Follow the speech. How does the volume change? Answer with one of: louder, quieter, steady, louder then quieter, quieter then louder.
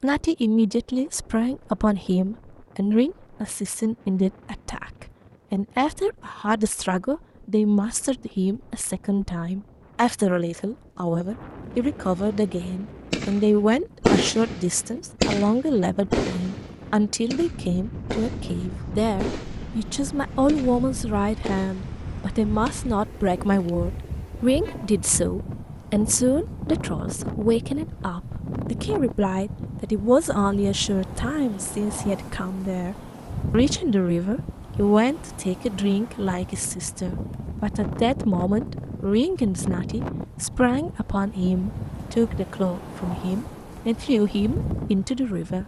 steady.